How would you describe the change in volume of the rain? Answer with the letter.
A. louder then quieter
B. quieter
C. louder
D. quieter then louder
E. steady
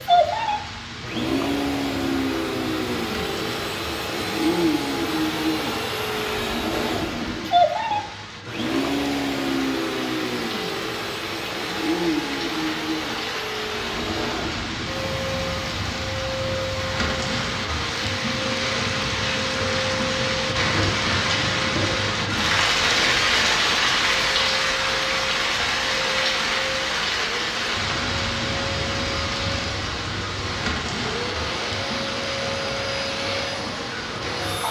A.